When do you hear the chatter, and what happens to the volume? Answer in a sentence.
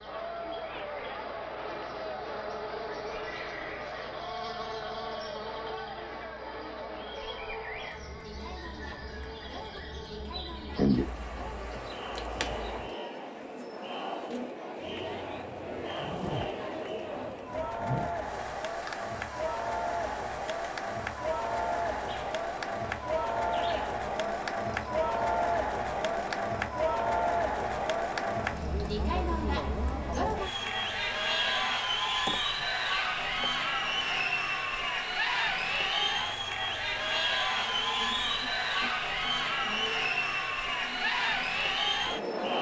You can hear the chatter from 0.0 to 42.5 s, getting louder.